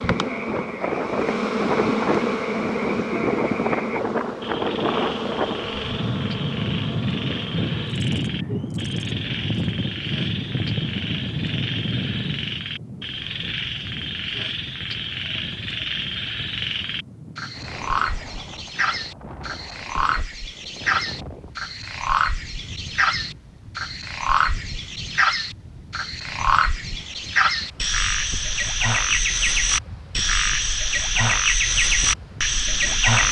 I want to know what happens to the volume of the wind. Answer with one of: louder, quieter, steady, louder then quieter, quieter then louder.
quieter.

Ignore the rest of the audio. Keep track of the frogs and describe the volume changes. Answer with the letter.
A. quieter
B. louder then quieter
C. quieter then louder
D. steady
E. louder
E.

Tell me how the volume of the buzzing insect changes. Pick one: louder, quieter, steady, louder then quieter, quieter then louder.
quieter.